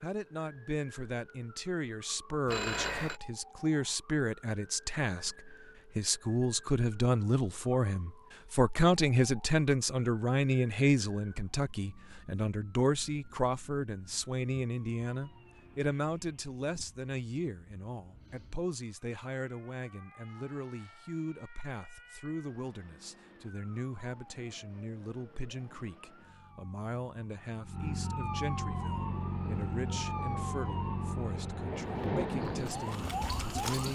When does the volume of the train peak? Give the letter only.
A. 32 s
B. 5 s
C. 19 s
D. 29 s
A.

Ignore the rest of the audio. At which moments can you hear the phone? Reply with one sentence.
You can hear the phone from 2.5 to 3.2 s.